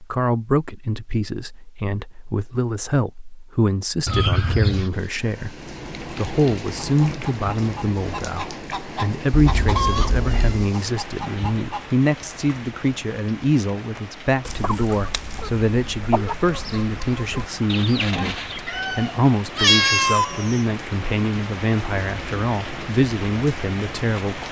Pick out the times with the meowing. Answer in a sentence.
The meowing can be heard from 4.0 to 4.9 s, from 9.3 to 10.6 s and from 18.6 to 20.6 s.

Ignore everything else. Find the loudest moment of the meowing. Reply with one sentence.
The volume of the meowing peaks at 20 seconds.